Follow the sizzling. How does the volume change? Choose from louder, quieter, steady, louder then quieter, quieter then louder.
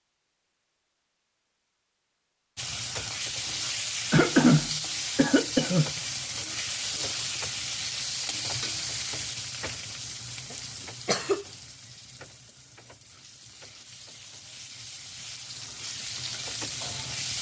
quieter then louder.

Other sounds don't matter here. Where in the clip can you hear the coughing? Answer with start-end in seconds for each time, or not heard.
4.1-5.9, 10.5-11.4.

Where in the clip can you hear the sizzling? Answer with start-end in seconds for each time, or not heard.
2.5-17.3.